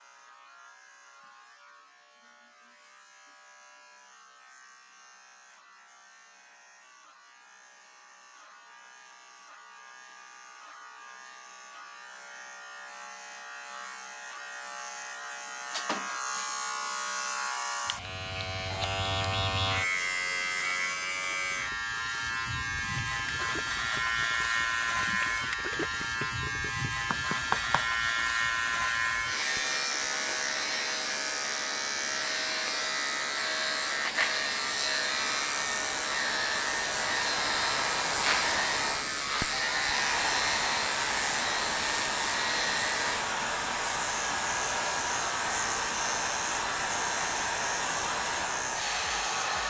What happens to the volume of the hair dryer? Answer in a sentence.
The volume of the hair dryer goes up.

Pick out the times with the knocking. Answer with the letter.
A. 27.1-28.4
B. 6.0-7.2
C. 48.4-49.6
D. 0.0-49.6
A.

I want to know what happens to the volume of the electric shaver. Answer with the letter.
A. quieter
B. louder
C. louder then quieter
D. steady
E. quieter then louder
B.